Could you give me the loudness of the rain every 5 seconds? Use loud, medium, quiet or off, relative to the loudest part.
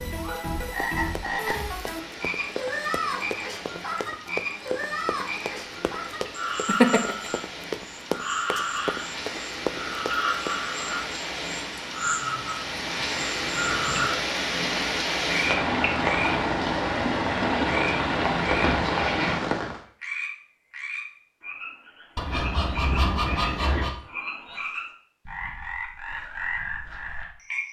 quiet, quiet, medium, loud, off, off.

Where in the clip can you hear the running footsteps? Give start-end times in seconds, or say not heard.
0.8-10.6.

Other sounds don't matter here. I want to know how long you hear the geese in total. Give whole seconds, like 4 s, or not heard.
2 s.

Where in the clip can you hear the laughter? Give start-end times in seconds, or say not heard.
6.7-7.3.